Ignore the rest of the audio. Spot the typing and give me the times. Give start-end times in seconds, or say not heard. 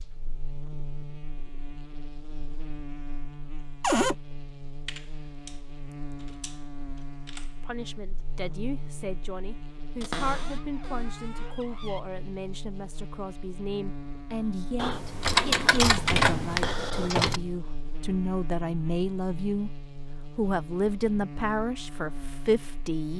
4.8-5.6, 6.2-7.5, 14.8-17.4.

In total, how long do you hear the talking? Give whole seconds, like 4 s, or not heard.
15 s.